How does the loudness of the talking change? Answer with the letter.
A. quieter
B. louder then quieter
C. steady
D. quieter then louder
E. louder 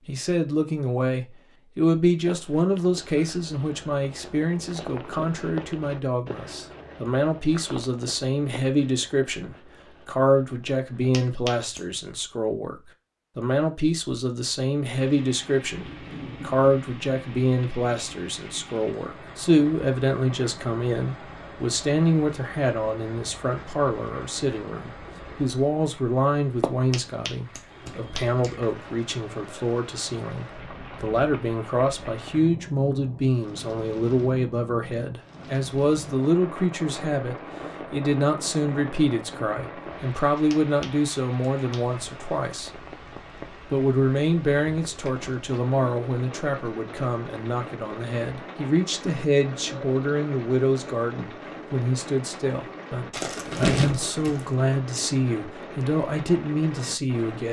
C.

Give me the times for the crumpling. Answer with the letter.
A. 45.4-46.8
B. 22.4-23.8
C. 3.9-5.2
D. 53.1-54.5
D.